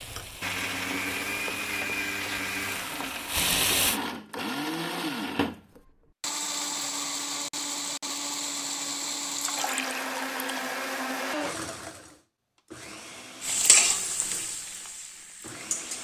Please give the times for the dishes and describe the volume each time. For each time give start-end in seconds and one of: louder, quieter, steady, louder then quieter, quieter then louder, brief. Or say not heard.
not heard.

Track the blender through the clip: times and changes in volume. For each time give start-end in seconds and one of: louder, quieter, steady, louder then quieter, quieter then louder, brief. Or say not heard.
0.0-15.9 quieter.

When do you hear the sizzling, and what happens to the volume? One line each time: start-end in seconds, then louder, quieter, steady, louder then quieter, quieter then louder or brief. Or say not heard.
0.0-4.0 louder
13.4-15.9 brief.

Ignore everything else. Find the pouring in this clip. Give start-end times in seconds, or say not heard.
9.3-10.8.